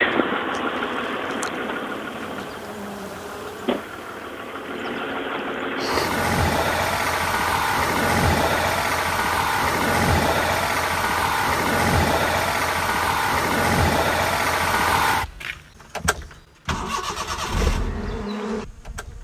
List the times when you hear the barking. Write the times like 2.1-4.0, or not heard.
not heard.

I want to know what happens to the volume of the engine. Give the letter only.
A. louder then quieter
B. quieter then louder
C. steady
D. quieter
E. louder
A.